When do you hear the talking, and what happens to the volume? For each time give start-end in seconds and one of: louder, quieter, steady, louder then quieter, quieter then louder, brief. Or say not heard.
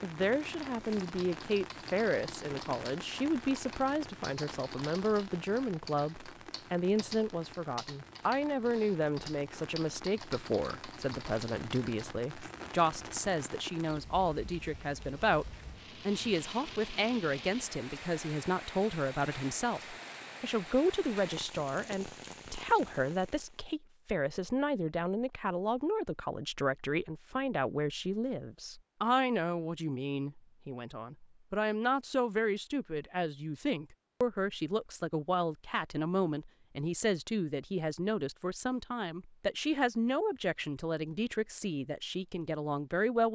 0.0-43.2 steady.